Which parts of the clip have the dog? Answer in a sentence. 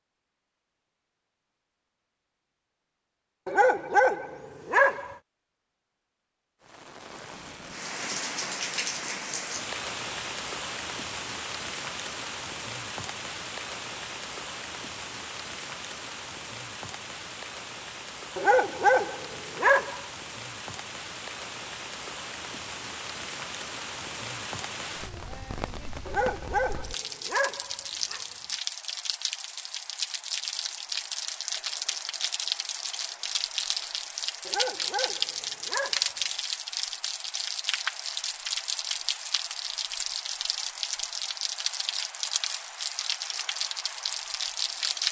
The dog can be heard from 3.5 to 5.2 s, from 18.4 to 20.0 s, from 26.1 to 28.2 s and from 34.5 to 36.2 s.